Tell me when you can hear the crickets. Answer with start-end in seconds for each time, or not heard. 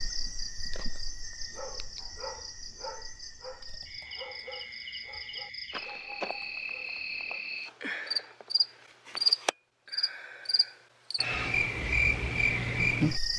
0.0-13.3.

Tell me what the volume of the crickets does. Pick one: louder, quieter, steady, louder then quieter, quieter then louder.
louder.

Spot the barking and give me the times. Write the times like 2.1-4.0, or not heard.
1.4-7.4.